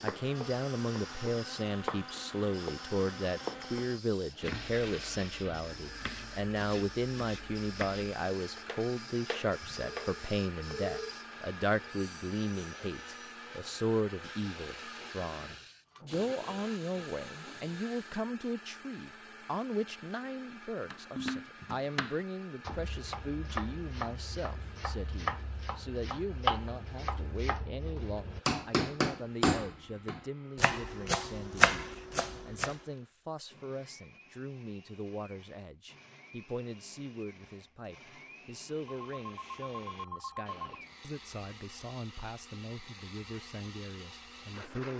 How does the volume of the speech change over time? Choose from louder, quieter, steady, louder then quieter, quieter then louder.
quieter.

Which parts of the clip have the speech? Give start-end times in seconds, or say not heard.
0.0-44.9.